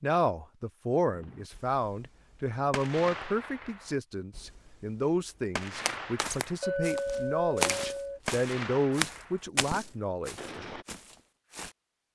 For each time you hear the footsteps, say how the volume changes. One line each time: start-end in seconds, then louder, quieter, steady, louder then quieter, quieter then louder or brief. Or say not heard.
5.8-11.7 louder then quieter.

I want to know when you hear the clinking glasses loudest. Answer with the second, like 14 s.
7 s.